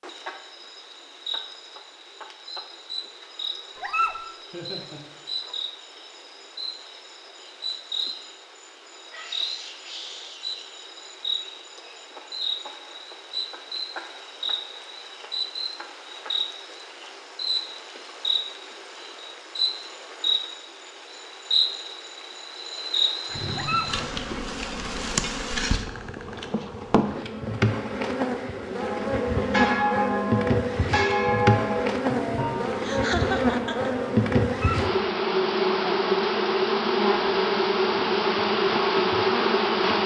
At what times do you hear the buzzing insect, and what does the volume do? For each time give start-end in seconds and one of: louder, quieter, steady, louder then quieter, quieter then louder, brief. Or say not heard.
0.0-40.0 louder.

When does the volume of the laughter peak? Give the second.
33 s.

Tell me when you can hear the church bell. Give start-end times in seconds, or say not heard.
28.8-34.1.